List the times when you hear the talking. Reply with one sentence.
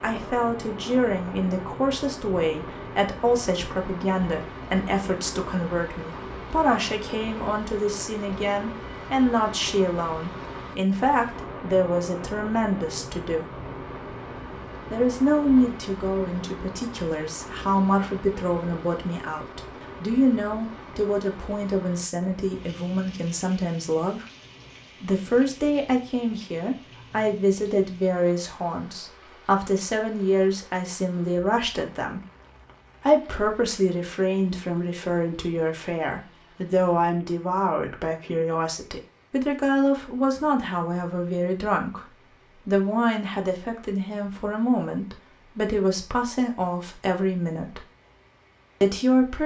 You can hear the talking from 0.0 to 13.4 s, from 14.9 to 24.2 s, from 25.0 to 32.2 s, from 33.0 to 47.8 s and from 48.8 to 49.4 s.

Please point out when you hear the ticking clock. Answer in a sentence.
You can't hear the ticking clock here.